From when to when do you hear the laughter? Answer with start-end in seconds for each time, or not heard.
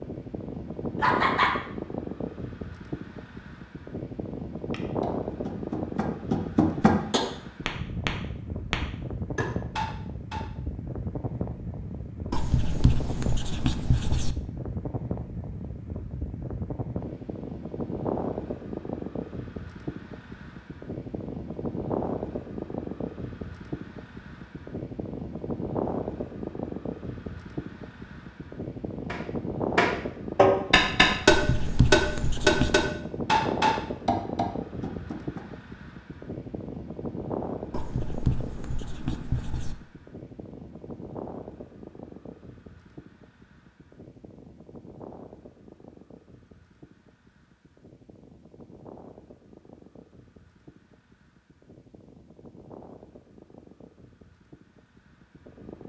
1.0-1.6.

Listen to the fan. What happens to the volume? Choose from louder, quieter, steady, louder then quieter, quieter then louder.
quieter.